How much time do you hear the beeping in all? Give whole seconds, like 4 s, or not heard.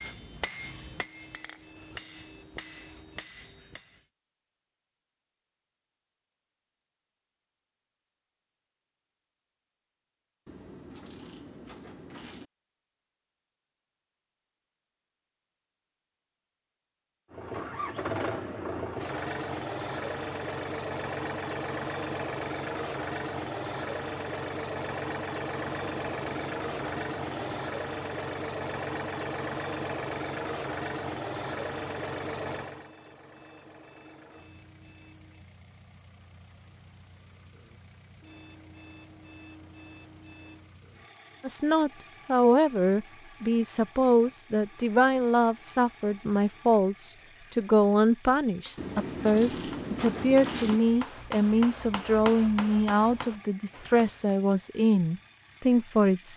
8 s.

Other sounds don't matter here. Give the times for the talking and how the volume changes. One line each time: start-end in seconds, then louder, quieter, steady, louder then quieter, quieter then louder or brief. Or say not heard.
41.4-56.3 steady.